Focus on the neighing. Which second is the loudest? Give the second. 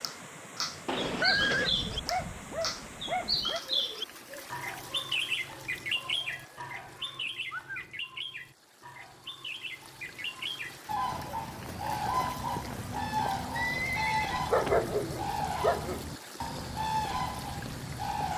1 s.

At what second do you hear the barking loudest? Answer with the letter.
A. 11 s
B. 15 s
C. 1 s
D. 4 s
B.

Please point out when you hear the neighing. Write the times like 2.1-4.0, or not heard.
0.8-1.7, 6.3-7.9, 13.6-14.8.